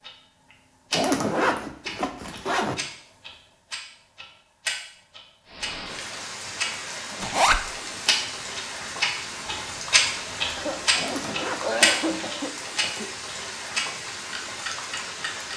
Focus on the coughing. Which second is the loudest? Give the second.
12 s.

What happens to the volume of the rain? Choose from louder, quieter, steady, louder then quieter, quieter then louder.
steady.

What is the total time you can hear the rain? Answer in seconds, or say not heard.
10 s.